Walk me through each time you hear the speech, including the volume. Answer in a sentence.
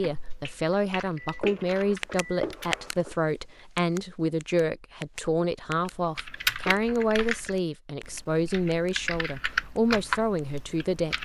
You can hear the speech from 0.0 to 11.2 s, at a steady volume.